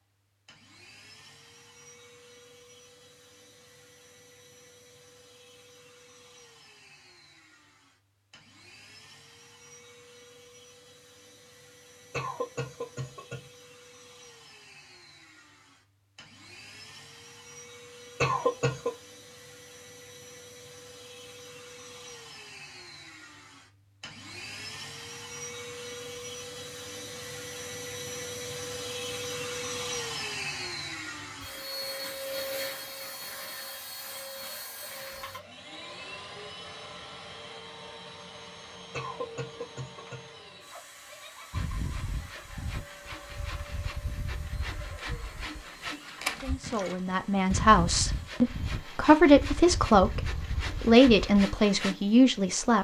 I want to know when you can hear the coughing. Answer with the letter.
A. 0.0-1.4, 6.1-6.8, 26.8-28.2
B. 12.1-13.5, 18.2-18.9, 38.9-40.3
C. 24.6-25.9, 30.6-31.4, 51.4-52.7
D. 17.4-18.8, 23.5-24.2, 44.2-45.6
B.